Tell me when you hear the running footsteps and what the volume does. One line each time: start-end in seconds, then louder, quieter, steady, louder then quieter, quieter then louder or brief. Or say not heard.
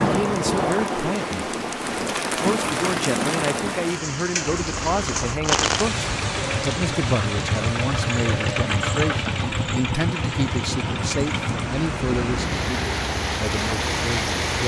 not heard.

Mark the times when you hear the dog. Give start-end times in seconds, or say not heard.
not heard.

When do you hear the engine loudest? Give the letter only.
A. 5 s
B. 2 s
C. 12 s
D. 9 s
D.